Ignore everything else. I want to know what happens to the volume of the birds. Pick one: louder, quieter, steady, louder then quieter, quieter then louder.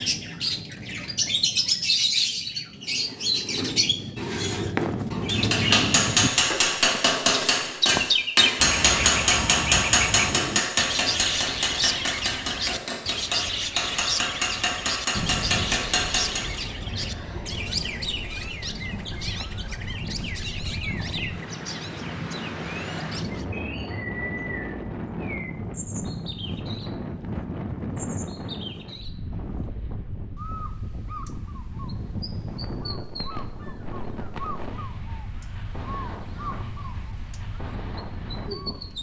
quieter.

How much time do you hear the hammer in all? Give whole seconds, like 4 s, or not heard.
11 s.